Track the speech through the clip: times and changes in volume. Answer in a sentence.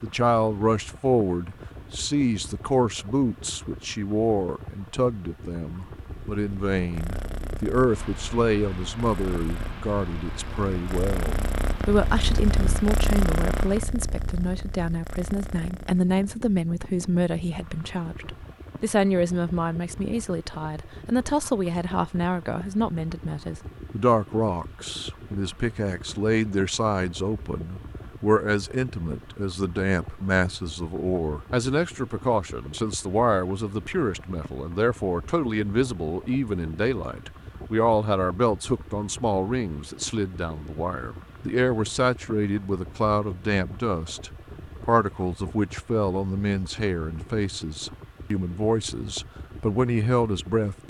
The speech can be heard from 0.0 to 50.8 s, at a steady volume.